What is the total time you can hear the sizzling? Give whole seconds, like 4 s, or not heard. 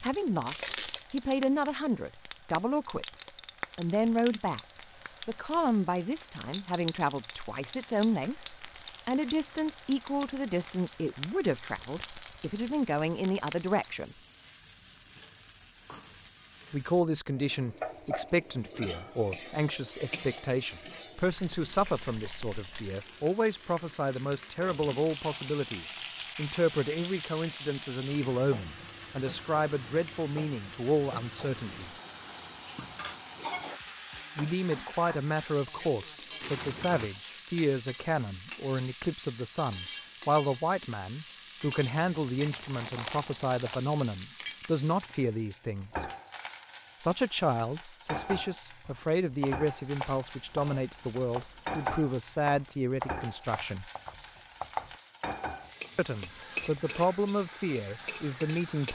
59 s.